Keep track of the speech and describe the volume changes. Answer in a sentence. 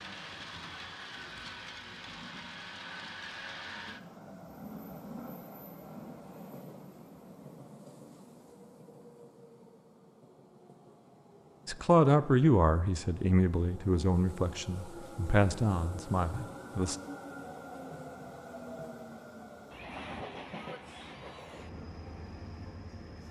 The loudness of the speech goes down.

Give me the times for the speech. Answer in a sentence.
You can hear the speech from 11.7 to 16.9 s.